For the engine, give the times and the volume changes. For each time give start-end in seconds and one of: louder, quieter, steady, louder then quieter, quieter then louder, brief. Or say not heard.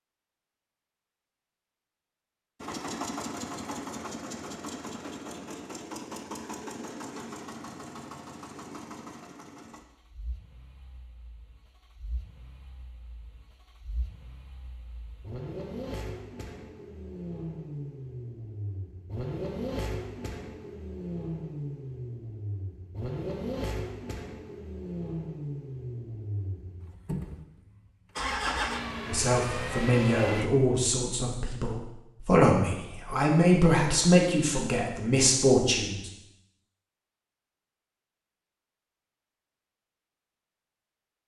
2.6-30.5 quieter then louder.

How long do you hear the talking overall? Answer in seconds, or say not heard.
7 s.